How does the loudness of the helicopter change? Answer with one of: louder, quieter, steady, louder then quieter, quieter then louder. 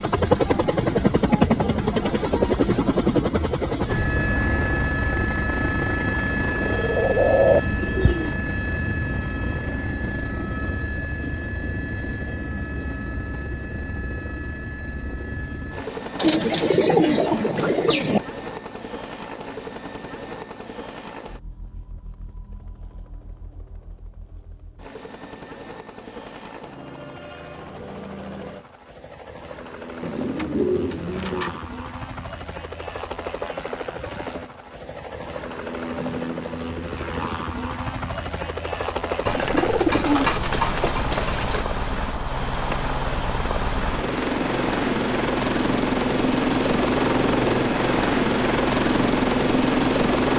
quieter then louder.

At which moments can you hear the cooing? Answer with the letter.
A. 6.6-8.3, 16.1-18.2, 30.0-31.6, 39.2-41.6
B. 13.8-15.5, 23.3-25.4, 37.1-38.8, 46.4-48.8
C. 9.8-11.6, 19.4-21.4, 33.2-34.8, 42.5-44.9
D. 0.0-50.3
A.